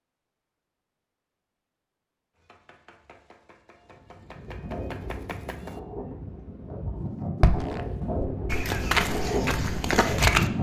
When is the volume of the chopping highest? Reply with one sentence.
The volume of the chopping peaks at 5 seconds.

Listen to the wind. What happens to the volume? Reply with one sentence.
The volume of the wind goes up.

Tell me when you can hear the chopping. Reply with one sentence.
The chopping can be heard from 2.4 to 5.8 s.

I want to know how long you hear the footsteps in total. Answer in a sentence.
You can hear the footsteps for 3 seconds altogether.